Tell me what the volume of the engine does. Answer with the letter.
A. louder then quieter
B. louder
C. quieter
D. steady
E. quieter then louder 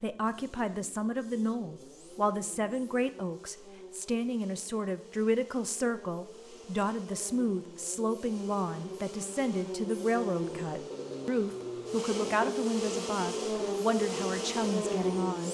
B.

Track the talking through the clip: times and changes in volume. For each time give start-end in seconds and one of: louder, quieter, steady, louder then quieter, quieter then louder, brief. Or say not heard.
0.0-15.4 steady.